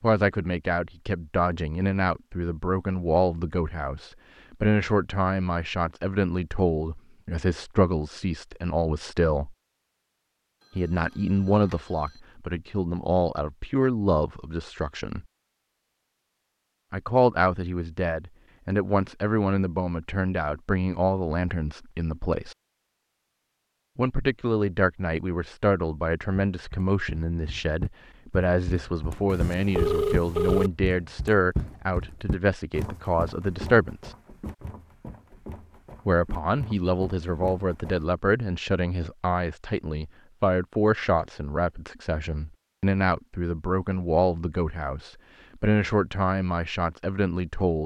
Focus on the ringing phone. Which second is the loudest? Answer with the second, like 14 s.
30 s.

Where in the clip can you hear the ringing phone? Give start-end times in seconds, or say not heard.
10.6-12.2, 29.2-30.7.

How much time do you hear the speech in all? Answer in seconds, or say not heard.
42 s.